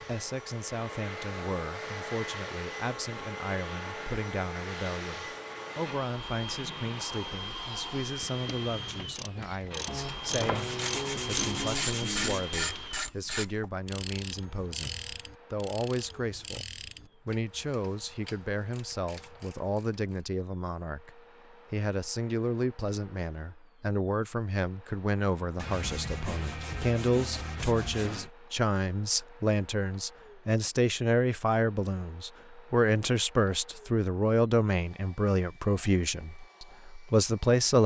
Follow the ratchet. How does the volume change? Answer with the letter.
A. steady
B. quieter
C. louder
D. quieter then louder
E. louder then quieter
E.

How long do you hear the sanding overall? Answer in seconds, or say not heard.
5 s.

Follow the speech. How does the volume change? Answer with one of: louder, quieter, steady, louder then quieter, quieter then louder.
louder.